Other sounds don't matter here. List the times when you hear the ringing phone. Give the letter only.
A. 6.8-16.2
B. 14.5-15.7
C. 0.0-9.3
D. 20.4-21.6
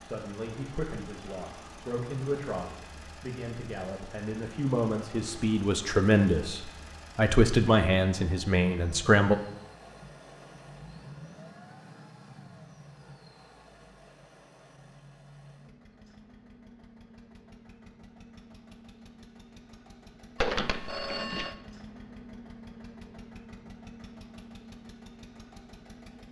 D.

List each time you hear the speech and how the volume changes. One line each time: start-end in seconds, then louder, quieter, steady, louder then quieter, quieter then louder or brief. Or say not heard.
0.0-9.3 louder.